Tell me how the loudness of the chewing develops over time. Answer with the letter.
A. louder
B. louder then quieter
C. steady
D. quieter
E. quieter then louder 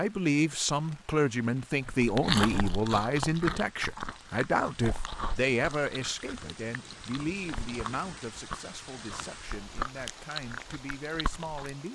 E.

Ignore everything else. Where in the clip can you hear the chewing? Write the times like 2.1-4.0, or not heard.
1.9-11.8.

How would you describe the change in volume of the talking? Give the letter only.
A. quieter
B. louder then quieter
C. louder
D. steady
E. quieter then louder
A.